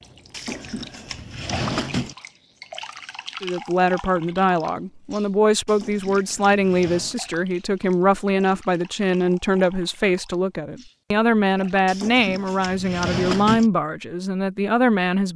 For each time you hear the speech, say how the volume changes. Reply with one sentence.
You can hear the speech from 3.4 to 15.3 s, at a steady volume.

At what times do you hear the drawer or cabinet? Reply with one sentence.
The drawer or cabinet can be heard from 0.3 to 2.1 s, from 5.7 to 7.2 s and from 11.8 to 13.7 s.